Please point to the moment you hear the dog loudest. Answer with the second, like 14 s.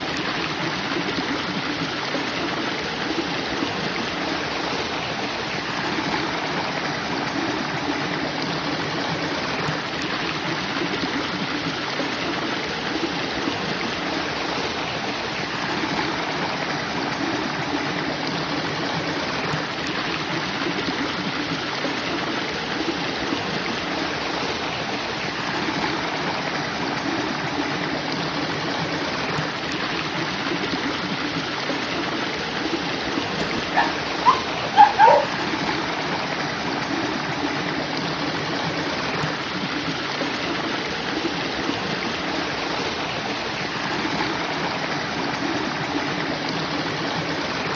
35 s.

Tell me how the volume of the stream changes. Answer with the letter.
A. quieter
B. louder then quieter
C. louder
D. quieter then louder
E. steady
E.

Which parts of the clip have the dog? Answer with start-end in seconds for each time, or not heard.
33.4-35.3.